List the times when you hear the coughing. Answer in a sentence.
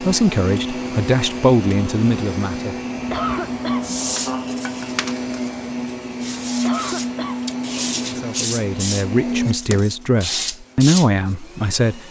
You can hear the coughing from 3.1 to 3.9 s and from 6.7 to 7.4 s.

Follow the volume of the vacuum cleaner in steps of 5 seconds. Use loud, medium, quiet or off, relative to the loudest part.
loud, loud, quiet.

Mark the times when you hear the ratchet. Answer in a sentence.
You can't hear the ratchet here.